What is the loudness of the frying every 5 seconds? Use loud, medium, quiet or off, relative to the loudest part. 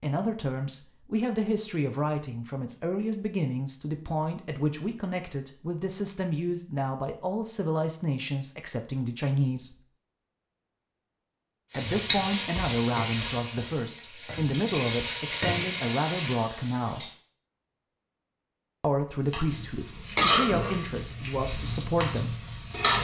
off, off, medium, medium, loud.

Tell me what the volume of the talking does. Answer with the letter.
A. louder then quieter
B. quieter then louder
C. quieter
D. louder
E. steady
E.